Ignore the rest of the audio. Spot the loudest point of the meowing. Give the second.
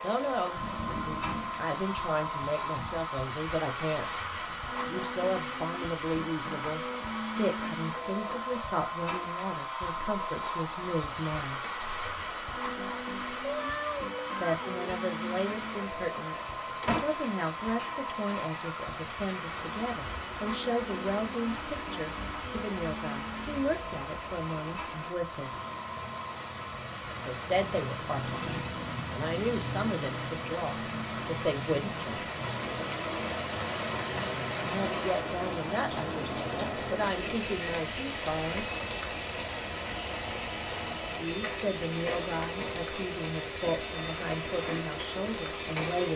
14 s.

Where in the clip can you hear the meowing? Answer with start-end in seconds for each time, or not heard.
13.4-14.9.